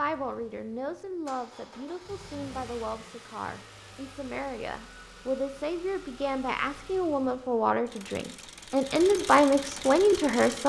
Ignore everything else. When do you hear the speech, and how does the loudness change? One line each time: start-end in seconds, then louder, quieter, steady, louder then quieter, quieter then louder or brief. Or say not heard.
0.0-10.6 louder.